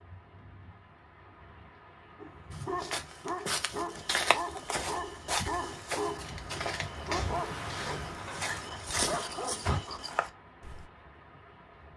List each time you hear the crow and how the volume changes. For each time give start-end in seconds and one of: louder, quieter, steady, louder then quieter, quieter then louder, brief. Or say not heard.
not heard.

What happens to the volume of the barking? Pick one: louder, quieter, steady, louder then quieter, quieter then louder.
steady.